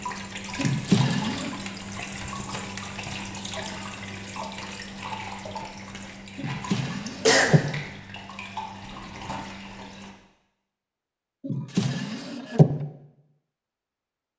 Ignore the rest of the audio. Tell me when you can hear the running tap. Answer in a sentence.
The running tap can be heard from 0.0 to 10.1 s.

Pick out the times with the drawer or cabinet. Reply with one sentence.
The drawer or cabinet can be heard from 0.6 to 1.6 s, from 6.3 to 7.7 s and from 11.4 to 12.8 s.